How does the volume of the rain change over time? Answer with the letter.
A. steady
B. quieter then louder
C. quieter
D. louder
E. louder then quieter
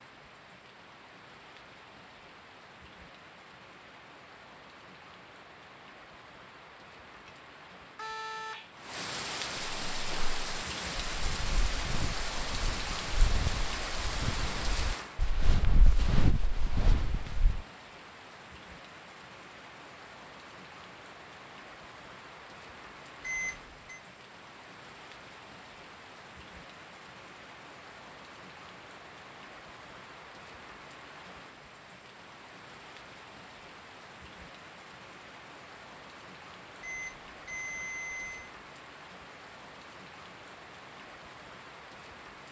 E.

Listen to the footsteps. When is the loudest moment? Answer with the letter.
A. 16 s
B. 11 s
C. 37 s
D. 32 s
A.